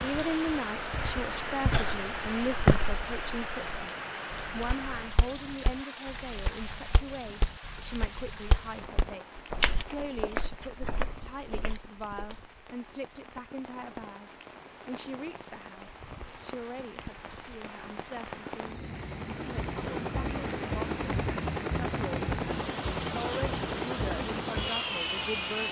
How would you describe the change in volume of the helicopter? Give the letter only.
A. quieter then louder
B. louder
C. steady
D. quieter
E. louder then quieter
C.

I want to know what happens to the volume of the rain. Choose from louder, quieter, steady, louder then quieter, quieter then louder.
quieter then louder.